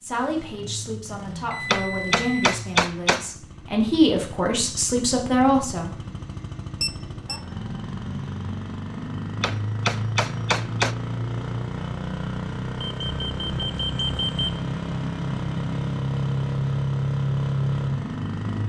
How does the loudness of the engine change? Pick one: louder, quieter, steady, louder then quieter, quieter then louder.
louder.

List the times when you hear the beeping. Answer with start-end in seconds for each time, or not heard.
1.5-2.6, 6.8-7.4, 12.8-14.6.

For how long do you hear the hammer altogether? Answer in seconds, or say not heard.
3 s.